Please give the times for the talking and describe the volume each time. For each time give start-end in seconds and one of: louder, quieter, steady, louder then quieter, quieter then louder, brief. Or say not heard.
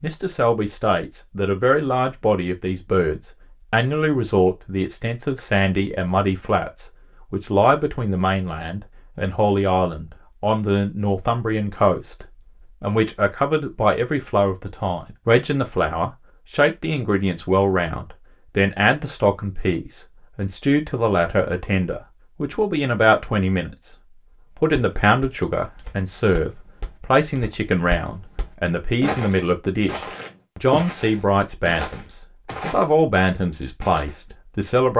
0.0-23.9 steady
24.6-34.9 steady.